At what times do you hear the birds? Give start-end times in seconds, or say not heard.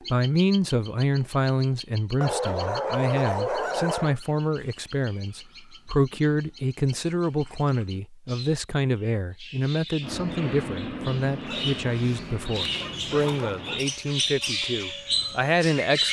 0.0-16.0.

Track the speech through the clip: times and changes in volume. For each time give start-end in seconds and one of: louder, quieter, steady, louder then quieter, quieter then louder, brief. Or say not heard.
0.1-16.0 steady.